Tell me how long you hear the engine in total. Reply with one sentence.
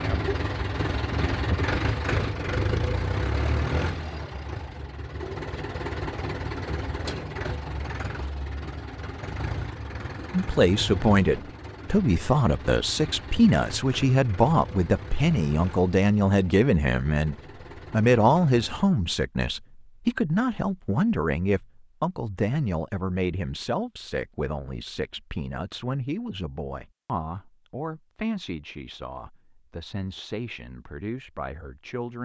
You can hear the engine for 19 seconds altogether.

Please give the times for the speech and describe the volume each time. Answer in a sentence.
You can hear the speech from 10.3 to 32.1 s, getting quieter.